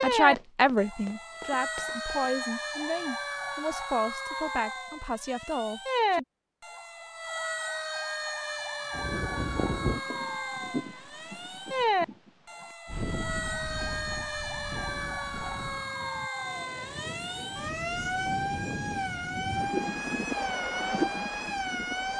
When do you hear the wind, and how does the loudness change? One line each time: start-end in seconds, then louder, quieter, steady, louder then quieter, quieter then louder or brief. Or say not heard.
8.9-22.1 quieter then louder.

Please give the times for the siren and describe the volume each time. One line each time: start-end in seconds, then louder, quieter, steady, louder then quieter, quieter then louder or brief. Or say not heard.
0.0-22.1 steady.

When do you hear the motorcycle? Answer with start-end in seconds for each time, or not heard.
not heard.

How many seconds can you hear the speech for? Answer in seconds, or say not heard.
6 s.